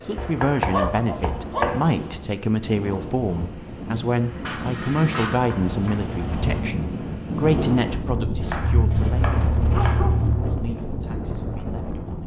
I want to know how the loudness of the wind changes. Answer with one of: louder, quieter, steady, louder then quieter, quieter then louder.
louder.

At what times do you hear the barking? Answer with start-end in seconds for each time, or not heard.
0.7-2.2, 4.5-5.5, 8.6-10.5.